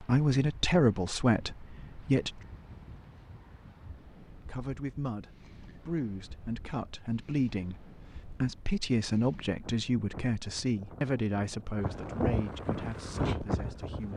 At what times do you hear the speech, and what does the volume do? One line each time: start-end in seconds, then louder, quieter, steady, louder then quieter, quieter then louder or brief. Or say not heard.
0.0-2.4 brief
4.2-14.1 louder then quieter.